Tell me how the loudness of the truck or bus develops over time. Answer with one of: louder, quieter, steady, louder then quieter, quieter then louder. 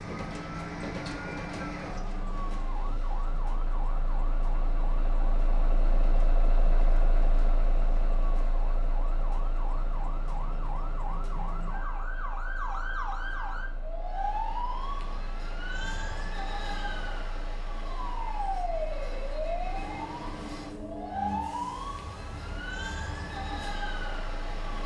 quieter then louder.